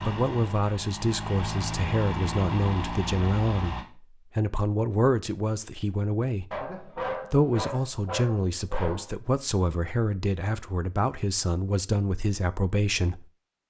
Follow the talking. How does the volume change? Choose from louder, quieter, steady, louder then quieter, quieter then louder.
steady.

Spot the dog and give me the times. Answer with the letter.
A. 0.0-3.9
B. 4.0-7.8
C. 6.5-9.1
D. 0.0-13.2
C.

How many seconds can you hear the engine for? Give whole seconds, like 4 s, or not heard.
4 s.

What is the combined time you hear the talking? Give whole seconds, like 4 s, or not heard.
13 s.